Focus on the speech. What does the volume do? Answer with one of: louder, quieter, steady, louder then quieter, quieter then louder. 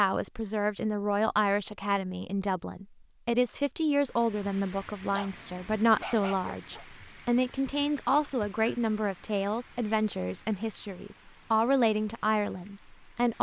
steady.